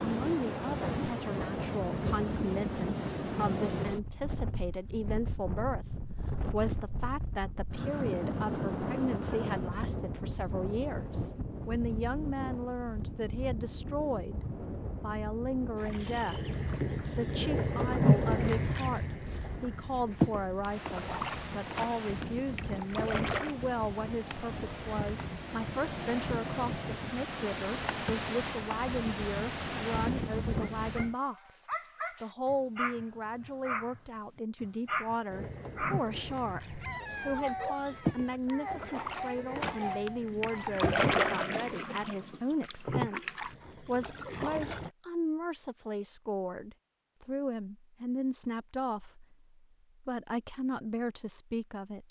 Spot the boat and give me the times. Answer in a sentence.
You can hear the boat from 15.8 to 23.6 s and from 35.3 to 44.9 s.